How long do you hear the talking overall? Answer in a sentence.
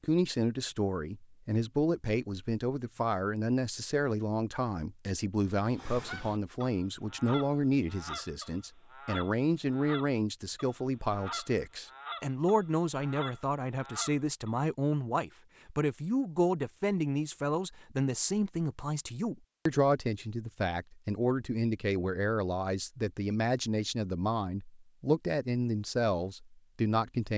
The talking can be heard for 27 seconds in total.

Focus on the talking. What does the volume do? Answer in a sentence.
The volume of the talking stays about the same.